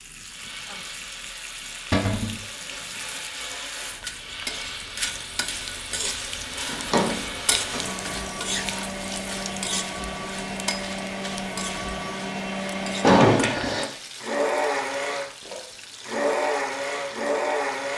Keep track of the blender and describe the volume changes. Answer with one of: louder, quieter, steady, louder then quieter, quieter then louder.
louder.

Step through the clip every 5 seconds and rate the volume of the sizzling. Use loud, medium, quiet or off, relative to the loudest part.
medium, loud, medium, medium.